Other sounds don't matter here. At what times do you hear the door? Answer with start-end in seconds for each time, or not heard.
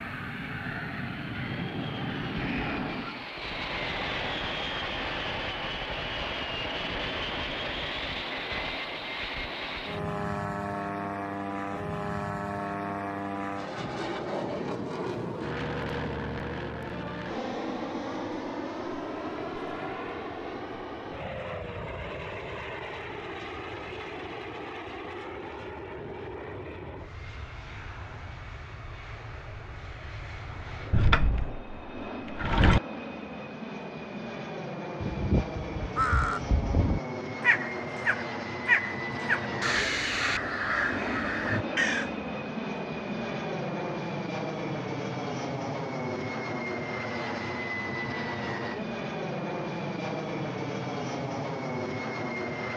30.9-32.8.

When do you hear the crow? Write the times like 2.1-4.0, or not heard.
35.0-42.1.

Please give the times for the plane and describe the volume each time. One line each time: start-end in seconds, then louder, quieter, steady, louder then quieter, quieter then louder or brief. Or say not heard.
0.0-52.7 quieter then louder.